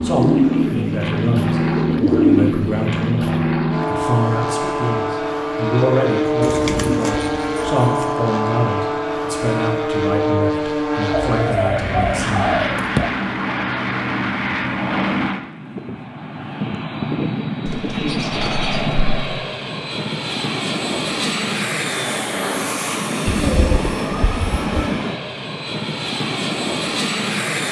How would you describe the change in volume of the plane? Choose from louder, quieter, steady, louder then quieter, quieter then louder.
steady.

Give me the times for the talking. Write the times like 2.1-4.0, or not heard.
0.0-12.6.